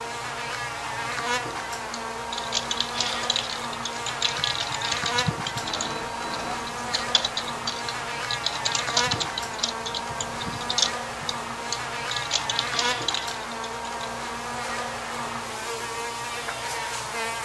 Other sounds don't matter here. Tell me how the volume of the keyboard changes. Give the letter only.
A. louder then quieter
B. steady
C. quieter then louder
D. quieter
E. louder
B.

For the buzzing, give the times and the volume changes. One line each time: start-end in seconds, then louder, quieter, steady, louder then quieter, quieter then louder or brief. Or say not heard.
0.0-17.4 steady.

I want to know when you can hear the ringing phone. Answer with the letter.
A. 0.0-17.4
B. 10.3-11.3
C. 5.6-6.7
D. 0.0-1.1
C.